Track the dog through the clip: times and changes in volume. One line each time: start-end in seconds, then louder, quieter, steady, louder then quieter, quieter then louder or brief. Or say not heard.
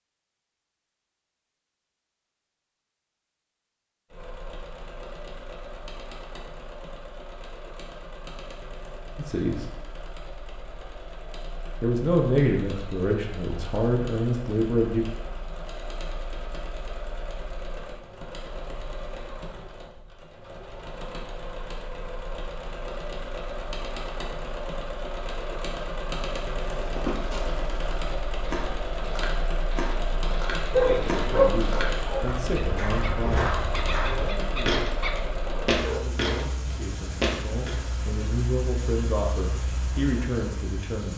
30.7-36.5 quieter.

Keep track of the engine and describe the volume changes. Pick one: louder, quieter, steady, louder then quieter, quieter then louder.
louder.